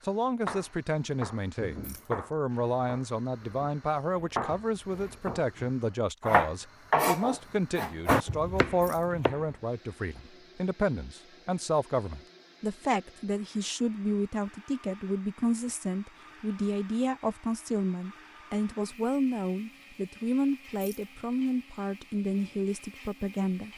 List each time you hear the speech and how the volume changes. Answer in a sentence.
You can hear the speech from 0.1 to 23.7 s, at a steady volume.